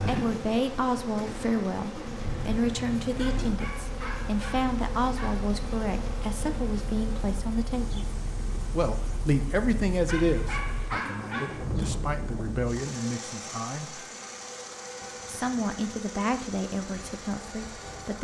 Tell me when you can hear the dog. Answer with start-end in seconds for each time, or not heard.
3.1-5.3, 10.1-11.7.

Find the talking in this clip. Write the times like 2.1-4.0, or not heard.
0.0-8.1, 8.7-14.0, 15.2-18.1.